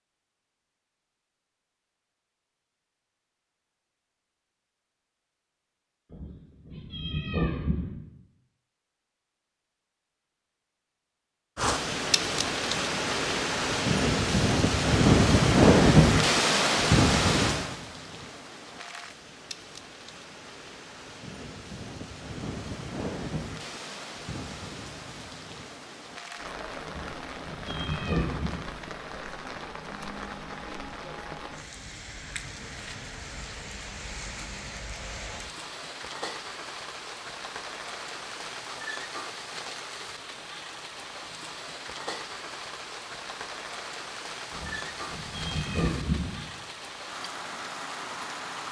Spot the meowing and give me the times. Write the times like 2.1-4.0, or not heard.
6.1-7.9, 26.9-28.5, 44.5-46.3.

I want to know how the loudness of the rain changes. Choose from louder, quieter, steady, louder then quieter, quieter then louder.
quieter.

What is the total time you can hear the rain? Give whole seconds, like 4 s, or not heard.
37 s.